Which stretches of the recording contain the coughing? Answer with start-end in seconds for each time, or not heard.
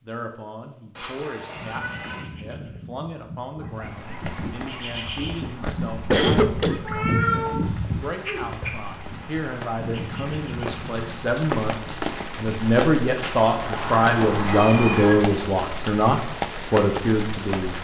5.6-6.8.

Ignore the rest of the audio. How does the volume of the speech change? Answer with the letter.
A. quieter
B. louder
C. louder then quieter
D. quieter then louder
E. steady
B.